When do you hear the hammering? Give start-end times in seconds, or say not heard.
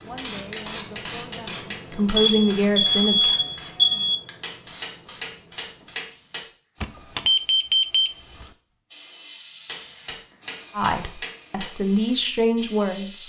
0.1-2.1, 4.4-6.4, 9.7-11.7.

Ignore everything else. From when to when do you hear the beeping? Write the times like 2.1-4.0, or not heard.
2.1-4.2, 6.8-8.4.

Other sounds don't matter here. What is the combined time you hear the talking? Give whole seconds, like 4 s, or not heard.
6 s.